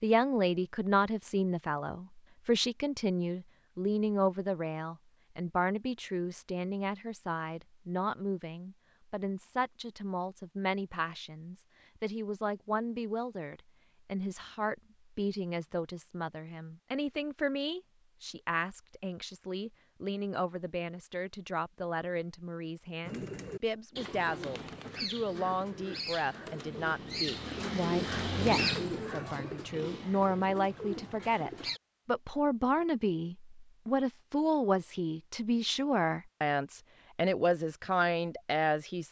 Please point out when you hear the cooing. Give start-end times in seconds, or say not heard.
23.0-31.8.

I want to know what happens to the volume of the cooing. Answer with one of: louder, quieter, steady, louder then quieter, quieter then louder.
louder then quieter.